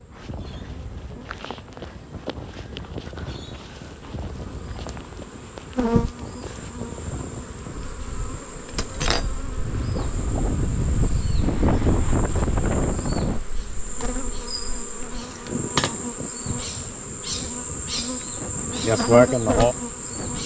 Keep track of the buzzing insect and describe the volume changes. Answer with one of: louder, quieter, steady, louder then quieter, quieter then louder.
louder.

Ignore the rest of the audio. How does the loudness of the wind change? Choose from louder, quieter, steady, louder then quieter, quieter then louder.
louder then quieter.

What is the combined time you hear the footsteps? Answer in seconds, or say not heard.
7 s.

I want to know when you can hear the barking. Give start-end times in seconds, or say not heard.
not heard.